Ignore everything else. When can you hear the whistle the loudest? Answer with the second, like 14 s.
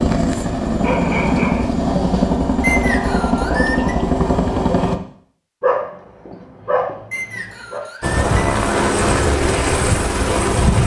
3 s.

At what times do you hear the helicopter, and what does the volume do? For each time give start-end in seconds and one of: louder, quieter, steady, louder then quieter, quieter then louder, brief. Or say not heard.
0.0-5.0 steady
8.0-10.8 brief.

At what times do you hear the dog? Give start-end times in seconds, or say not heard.
0.8-1.7, 5.6-7.8.